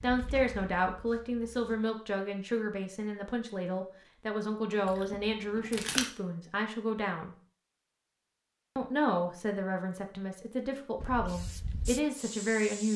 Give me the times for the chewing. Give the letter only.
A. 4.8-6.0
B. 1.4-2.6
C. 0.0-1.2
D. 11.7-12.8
A.